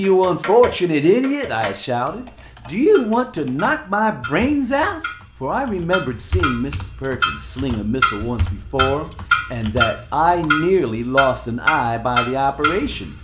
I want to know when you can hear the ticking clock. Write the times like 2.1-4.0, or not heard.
0.0-13.1.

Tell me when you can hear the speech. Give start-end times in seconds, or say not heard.
0.0-13.1.